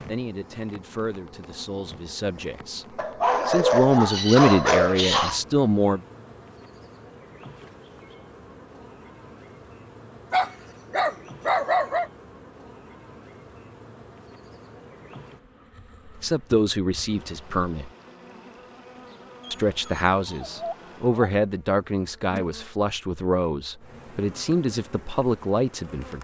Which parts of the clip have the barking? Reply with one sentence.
The barking can be heard from 3.0 to 5.4 s, from 10.3 to 12.1 s and from 19.4 to 21.3 s.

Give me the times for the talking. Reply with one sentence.
You can hear the talking from 0.1 to 6.0 s, from 16.1 to 17.9 s and from 19.5 to 26.1 s.